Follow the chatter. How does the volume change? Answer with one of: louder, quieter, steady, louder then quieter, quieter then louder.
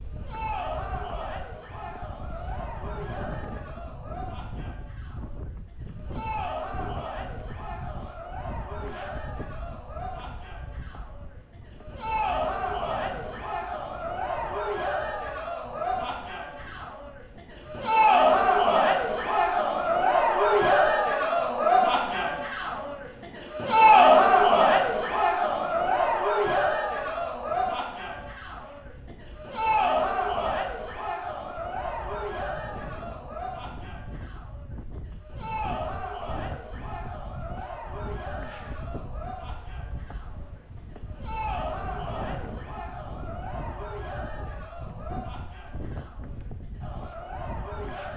louder then quieter.